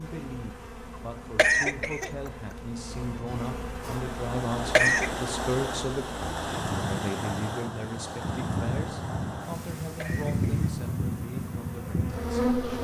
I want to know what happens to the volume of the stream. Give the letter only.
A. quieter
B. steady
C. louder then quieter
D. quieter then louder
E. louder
A.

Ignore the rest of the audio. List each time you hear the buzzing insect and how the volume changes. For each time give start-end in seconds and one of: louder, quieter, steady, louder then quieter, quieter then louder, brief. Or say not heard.
0.0-12.7 louder.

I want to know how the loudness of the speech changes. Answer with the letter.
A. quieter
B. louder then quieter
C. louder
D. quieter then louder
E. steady
B.